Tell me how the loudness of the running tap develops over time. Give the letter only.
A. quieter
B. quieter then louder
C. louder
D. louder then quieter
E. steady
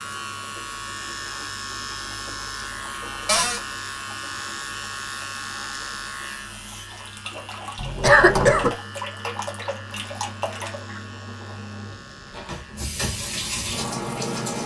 C.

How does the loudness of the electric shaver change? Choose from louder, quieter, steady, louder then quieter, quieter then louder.
quieter.